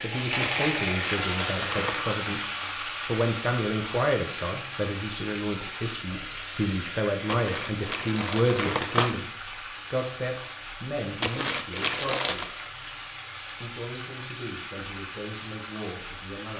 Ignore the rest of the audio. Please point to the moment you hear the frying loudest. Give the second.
1 s.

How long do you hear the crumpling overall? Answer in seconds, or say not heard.
5 s.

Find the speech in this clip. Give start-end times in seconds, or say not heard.
0.0-9.2, 9.9-12.7, 13.6-16.5.